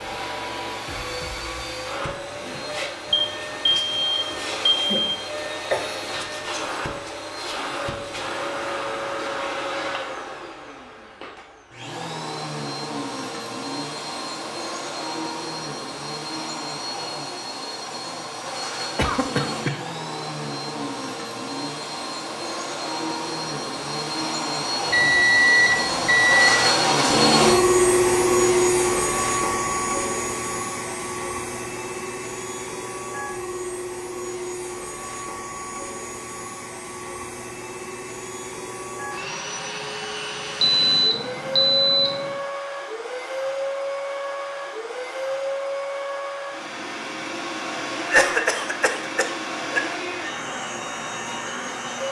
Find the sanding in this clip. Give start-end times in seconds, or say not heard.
not heard.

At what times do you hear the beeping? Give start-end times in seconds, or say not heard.
3.1-5.0, 24.9-26.6, 40.6-42.3.